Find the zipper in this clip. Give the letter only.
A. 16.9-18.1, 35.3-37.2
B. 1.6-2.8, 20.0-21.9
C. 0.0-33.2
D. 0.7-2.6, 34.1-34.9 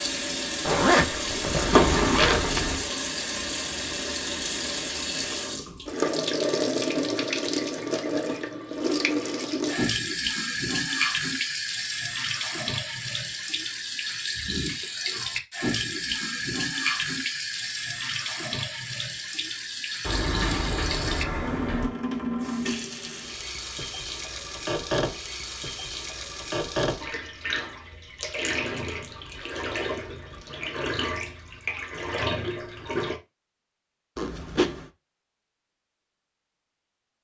D.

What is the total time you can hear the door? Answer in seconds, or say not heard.
3 s.